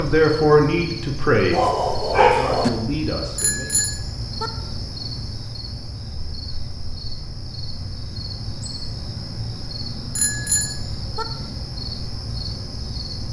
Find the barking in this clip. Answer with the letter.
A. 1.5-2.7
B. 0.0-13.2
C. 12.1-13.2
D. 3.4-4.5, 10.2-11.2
A.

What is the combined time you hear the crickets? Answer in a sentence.
You can hear the crickets for 13 seconds altogether.